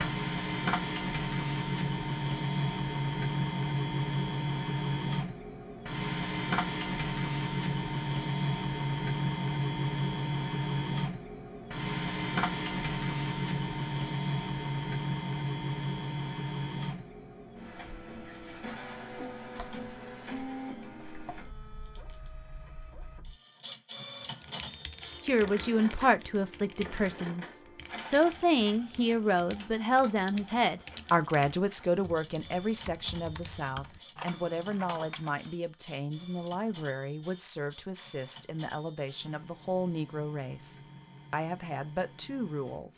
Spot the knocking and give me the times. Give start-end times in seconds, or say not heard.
not heard.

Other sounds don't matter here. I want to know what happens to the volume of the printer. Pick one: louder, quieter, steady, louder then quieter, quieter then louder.
quieter.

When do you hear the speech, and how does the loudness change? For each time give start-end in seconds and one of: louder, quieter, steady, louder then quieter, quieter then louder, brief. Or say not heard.
25.2-42.9 quieter.